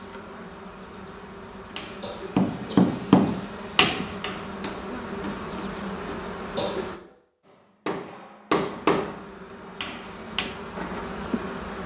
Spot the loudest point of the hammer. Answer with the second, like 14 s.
3 s.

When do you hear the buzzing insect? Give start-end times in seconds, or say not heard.
0.0-7.0, 8.7-11.8.